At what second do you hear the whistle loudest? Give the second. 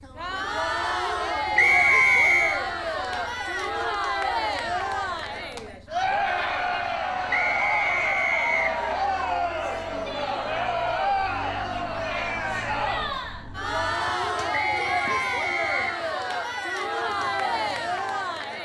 2 s.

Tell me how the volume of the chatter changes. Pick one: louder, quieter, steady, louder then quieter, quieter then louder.
steady.